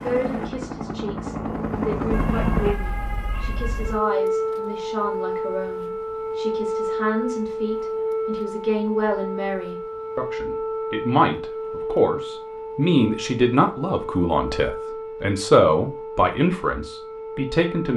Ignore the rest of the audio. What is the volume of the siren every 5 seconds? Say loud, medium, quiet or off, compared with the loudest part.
loud, loud, loud, medium.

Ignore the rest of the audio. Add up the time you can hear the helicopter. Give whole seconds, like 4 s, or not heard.
3 s.